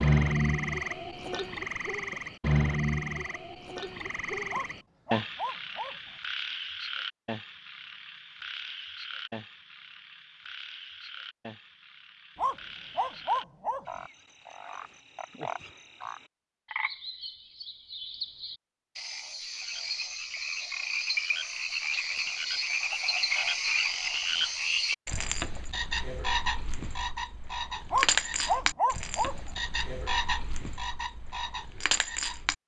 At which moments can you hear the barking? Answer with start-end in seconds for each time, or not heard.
4.5-6.0, 12.3-14.0, 27.9-29.4.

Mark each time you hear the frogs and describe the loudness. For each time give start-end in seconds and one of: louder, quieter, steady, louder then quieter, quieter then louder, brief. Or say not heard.
0.0-32.5 quieter then louder.